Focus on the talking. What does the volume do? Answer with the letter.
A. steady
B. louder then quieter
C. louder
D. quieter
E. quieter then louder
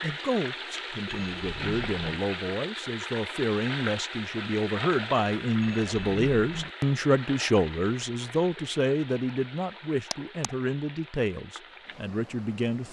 B.